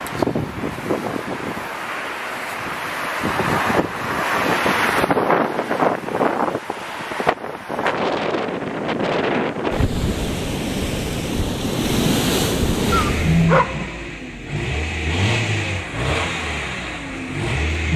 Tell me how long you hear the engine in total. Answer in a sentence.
The engine can be heard for 5 seconds in total.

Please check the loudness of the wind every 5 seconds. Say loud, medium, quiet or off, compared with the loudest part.
loud, loud, loud, off.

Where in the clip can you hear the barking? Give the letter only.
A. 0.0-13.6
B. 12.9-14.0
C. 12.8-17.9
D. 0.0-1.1
B.